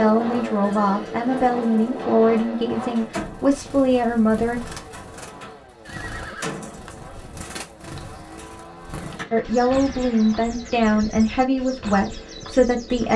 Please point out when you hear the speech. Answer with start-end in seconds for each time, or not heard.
0.0-4.6, 9.3-13.1.